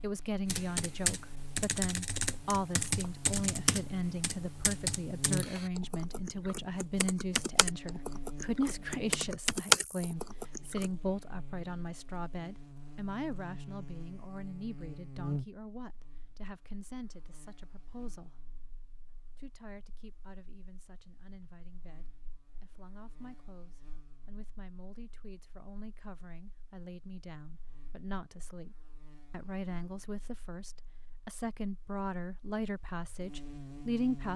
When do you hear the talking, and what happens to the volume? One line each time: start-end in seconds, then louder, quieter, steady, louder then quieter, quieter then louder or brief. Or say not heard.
0.0-18.4 quieter
19.4-34.3 louder.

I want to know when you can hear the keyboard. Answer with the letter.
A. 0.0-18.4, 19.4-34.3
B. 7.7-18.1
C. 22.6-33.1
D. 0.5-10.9
D.